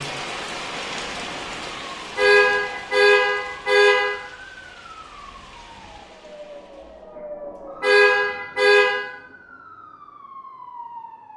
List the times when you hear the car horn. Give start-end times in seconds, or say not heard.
2.1-4.2, 7.8-9.0.